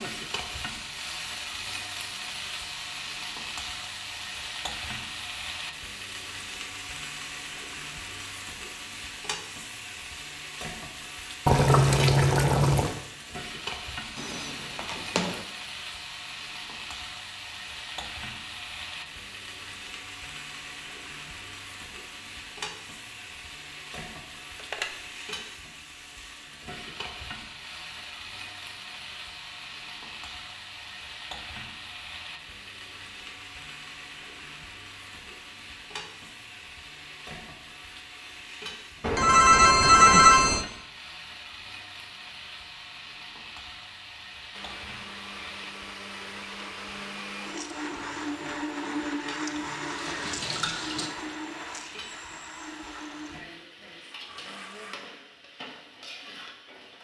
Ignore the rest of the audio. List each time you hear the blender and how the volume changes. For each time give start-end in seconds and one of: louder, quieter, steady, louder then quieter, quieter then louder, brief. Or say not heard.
44.5-55.0 louder then quieter.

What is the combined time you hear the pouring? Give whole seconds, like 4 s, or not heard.
3 s.